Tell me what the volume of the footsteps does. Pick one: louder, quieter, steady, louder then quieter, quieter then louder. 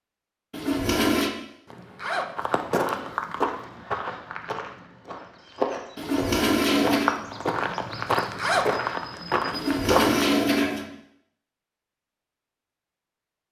quieter then louder.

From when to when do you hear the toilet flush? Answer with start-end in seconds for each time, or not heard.
0.5-1.3, 6.0-7.2, 9.5-10.8.